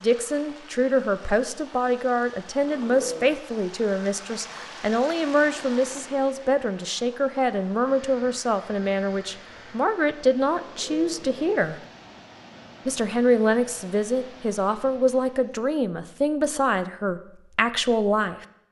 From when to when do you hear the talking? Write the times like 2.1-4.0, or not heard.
0.0-11.8, 12.8-18.4.